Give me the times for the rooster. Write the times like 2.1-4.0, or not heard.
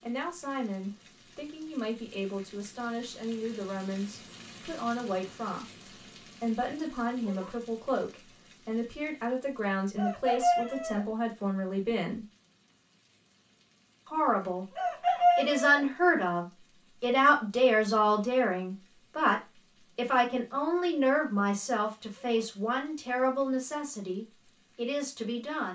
9.9-11.1, 14.8-15.8.